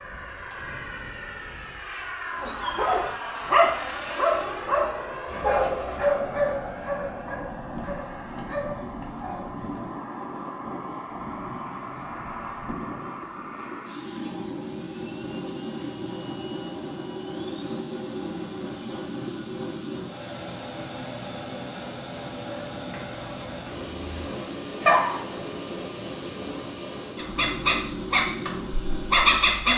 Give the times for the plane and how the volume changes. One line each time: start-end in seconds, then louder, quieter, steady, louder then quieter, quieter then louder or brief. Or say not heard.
0.0-29.7 steady.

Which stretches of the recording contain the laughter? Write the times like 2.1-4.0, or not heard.
not heard.